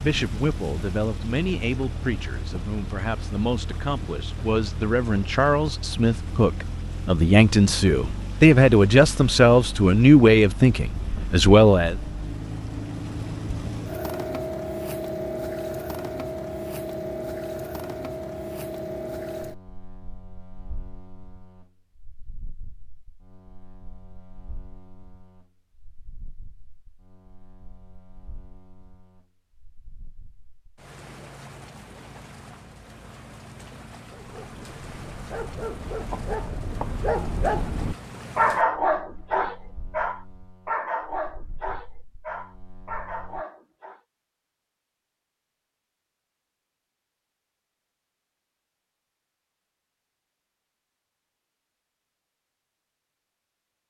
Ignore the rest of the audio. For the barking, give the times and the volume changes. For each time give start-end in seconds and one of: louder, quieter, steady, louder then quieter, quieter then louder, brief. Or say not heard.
34.1-44.0 louder then quieter.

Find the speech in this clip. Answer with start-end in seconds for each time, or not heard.
0.0-11.9.